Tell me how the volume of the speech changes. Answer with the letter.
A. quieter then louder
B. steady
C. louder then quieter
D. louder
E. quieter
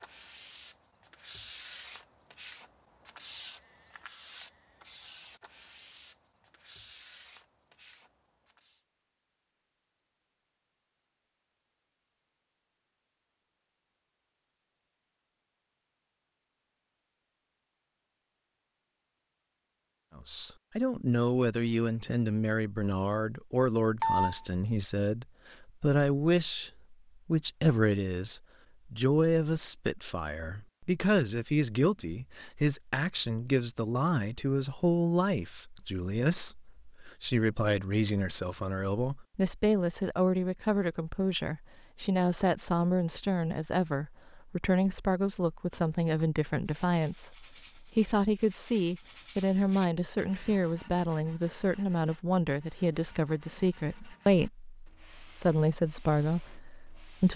B.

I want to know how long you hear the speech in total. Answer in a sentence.
The speech can be heard for 37 seconds in total.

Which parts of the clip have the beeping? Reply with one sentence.
You can hear the beeping from 24.0 to 24.4 s.